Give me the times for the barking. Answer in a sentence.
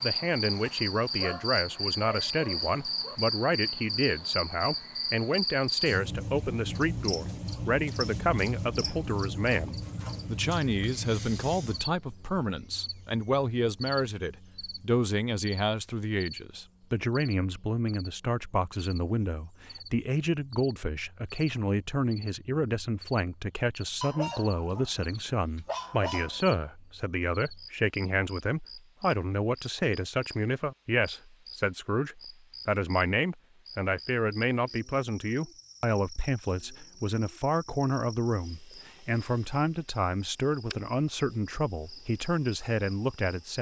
The barking can be heard from 1.1 to 3.1 s and from 24.0 to 26.6 s.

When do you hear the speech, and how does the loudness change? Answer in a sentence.
The speech can be heard from 0.0 to 43.5 s, at a steady volume.